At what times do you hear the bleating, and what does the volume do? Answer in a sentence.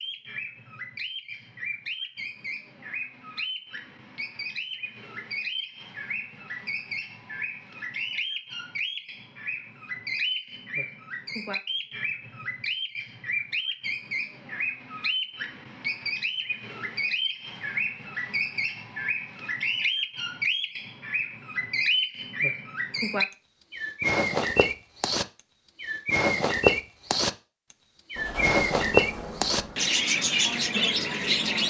The bleating can't be heard in this clip.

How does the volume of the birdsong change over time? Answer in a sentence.
The loudness of the birdsong goes up.